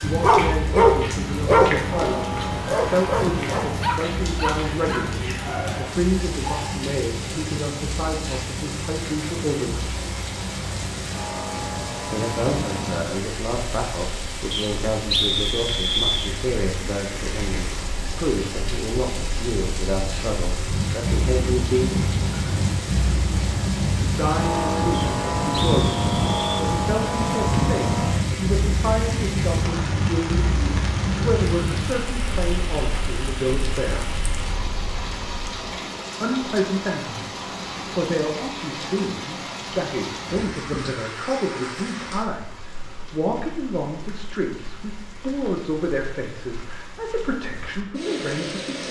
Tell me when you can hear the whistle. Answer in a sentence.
You can hear the whistle from 14.5 to 16.3 s and from 24.9 to 26.4 s.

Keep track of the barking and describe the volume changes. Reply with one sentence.
The loudness of the barking goes down.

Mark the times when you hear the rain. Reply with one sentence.
You can hear the rain from 0.0 to 48.8 s.